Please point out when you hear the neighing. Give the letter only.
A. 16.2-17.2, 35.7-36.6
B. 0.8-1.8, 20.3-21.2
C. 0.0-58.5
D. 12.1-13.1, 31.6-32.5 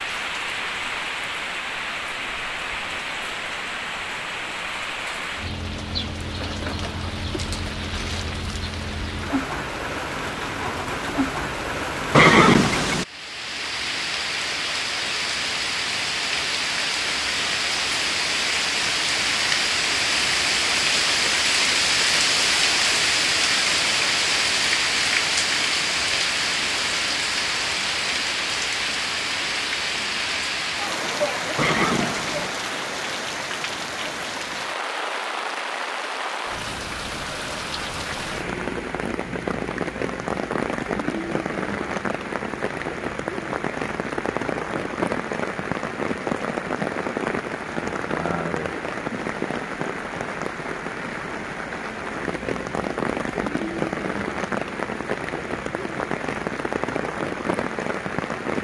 D.